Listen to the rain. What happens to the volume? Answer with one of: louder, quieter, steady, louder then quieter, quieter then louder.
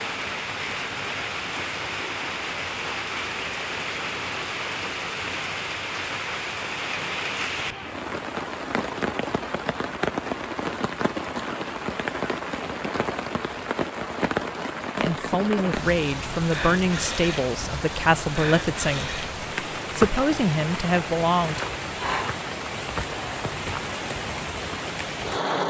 steady.